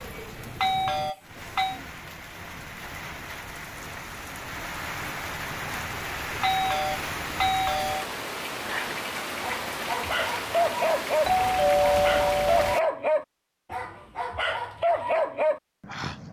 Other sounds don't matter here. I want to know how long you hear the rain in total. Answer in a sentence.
You can hear the rain for 13 seconds altogether.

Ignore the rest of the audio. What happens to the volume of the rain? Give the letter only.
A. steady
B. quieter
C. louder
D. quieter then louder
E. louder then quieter
C.